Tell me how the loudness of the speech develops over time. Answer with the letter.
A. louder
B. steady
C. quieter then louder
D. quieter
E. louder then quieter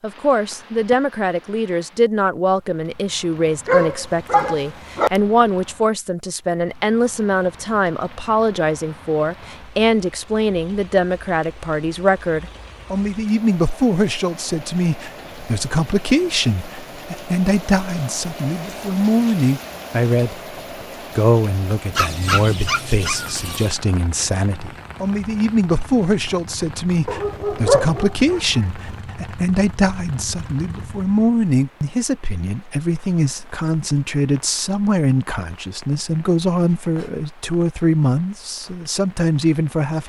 B.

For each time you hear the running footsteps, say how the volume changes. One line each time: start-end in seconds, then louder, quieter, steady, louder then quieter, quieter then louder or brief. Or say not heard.
not heard.